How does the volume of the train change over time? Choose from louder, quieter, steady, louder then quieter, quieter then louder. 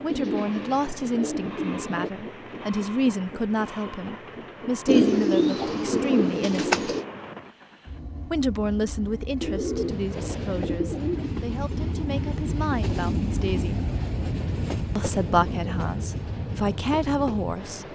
louder.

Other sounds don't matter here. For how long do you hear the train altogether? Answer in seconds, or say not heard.
18 s.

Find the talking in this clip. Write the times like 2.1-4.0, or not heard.
0.0-6.9, 8.2-13.8, 14.9-17.9.